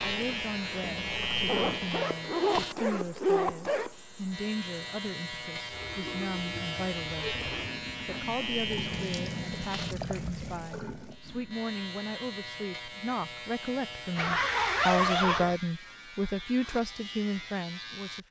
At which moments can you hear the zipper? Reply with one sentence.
You can hear the zipper from 1.4 to 3.9 s, from 7.4 to 9.1 s and from 14.2 to 15.6 s.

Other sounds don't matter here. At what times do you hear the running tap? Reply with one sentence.
The running tap can be heard from 0.0 to 11.6 s.